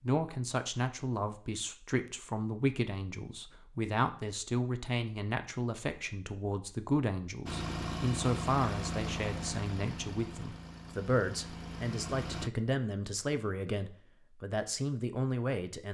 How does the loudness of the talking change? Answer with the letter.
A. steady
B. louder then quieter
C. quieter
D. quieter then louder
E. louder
A.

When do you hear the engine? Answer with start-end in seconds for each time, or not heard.
7.5-12.5.